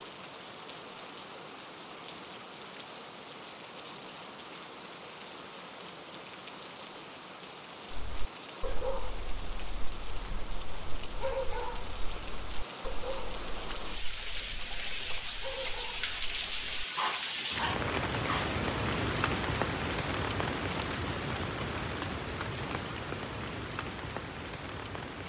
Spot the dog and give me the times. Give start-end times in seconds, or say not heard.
7.9-18.6.